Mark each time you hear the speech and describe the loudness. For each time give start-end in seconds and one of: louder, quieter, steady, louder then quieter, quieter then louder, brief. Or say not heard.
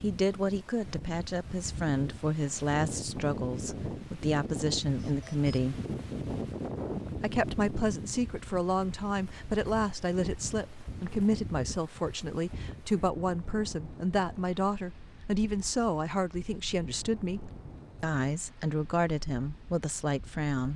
0.0-5.8 steady
7.2-20.7 steady.